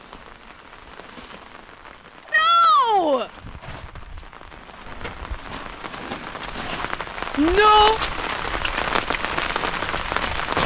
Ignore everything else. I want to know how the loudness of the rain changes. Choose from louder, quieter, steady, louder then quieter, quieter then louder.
louder.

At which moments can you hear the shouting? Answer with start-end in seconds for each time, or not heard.
2.3-3.3, 7.3-8.0.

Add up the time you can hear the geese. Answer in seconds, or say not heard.
not heard.